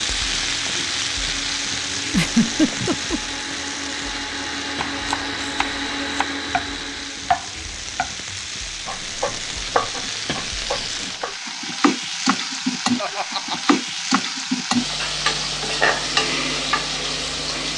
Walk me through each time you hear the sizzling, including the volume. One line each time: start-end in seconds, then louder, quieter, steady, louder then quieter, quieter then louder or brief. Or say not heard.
0.0-17.7 quieter then louder.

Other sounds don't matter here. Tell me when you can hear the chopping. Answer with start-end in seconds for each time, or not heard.
4.8-11.3.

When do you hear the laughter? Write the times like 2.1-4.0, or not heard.
2.1-3.2, 13.0-13.8.